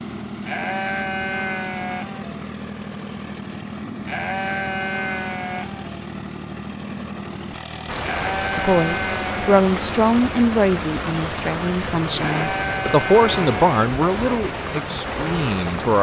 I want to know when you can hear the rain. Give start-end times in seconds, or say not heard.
7.8-15.9.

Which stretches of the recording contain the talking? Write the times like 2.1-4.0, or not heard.
8.4-15.9.